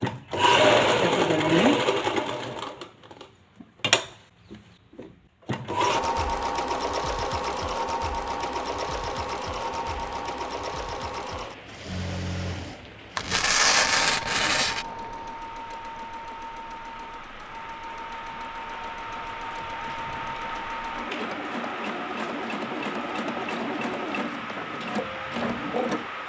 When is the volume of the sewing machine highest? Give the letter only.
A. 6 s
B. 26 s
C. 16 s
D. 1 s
D.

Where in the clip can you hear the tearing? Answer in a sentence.
The tearing can be heard from 13.2 to 14.8 s.